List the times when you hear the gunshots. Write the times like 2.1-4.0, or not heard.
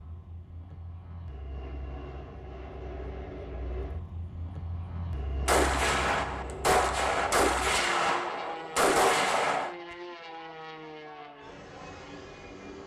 5.5-9.8.